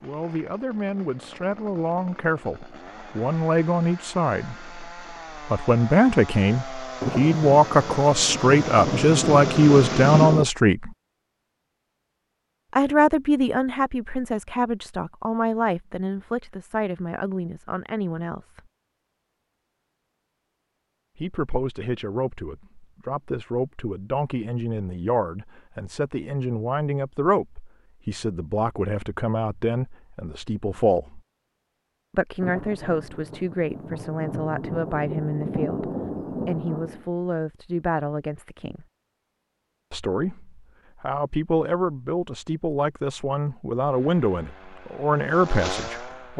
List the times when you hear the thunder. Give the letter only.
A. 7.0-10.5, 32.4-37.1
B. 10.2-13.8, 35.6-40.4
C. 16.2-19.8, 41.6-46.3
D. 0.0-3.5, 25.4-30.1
A.